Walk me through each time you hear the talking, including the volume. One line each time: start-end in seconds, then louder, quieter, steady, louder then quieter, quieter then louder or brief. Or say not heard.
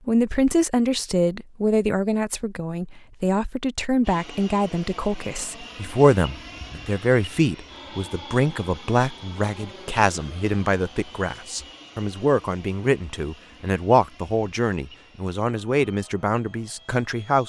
0.1-17.4 steady.